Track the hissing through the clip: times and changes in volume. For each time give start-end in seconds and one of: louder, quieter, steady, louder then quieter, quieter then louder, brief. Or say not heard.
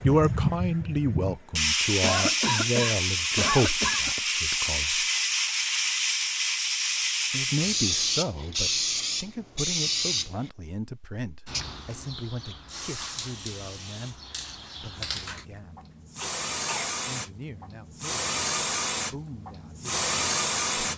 0.0-20.9 quieter then louder.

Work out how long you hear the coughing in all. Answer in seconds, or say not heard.
3 s.